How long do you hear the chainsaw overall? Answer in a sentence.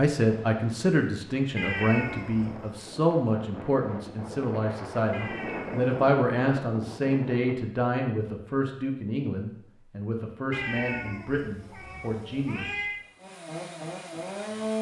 You can hear the chainsaw for 3 seconds altogether.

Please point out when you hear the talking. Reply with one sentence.
You can hear the talking from 0.0 to 12.8 s.